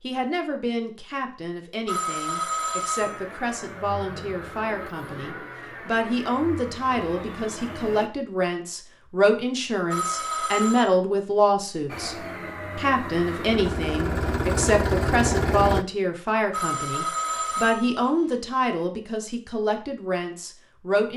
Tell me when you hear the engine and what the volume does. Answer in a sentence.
You can hear the engine from 3.0 to 8.1 s, at a steady volume; and from 11.8 to 15.8 s, getting louder.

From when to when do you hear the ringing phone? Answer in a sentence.
You can hear the ringing phone from 1.9 to 3.2 s, from 9.9 to 10.9 s and from 16.5 to 18.4 s.